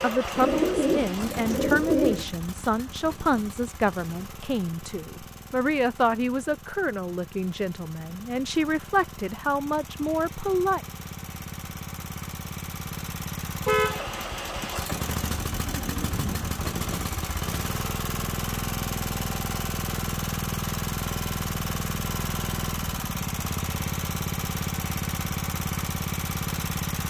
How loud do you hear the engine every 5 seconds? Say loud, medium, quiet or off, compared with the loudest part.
medium, quiet, medium, loud, loud, loud.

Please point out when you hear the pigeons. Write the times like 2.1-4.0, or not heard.
0.3-2.2, 15.1-16.6.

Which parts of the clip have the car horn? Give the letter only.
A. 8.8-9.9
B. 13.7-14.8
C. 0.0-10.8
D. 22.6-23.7
B.